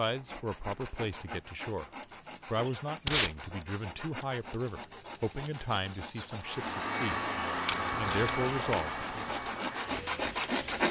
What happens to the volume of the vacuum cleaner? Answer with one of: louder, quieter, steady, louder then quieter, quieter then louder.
quieter.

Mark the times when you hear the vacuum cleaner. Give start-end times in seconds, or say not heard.
6.3-10.8.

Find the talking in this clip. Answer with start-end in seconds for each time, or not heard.
0.0-1.9, 2.5-7.2, 8.0-9.2.